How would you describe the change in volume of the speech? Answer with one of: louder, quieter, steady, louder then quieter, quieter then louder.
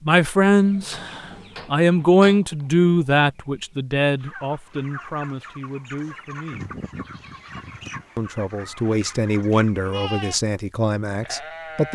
quieter then louder.